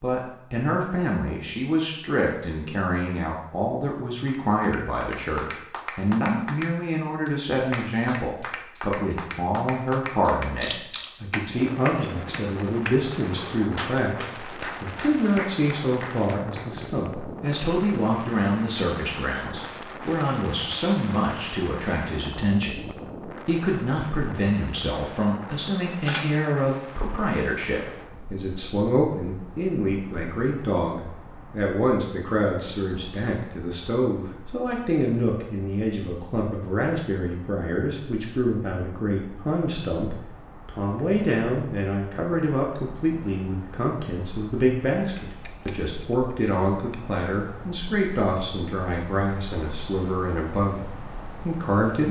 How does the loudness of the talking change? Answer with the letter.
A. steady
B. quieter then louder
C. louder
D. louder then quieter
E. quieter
A.